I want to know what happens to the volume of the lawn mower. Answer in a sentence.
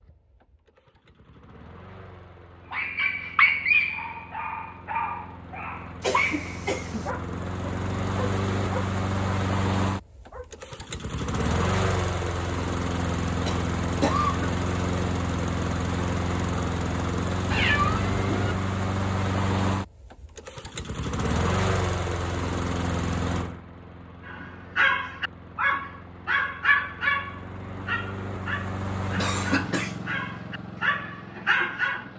The volume of the lawn mower goes up, then down.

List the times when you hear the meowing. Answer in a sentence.
You can hear the meowing from 17.5 to 18.6 s.